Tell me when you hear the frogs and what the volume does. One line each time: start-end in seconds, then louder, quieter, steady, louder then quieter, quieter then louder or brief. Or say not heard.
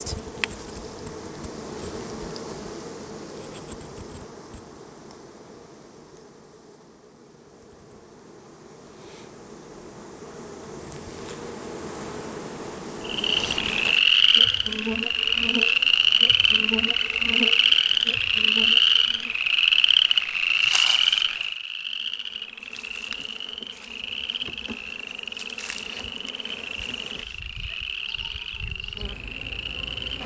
13.1-30.2 quieter.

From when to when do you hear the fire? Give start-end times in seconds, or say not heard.
not heard.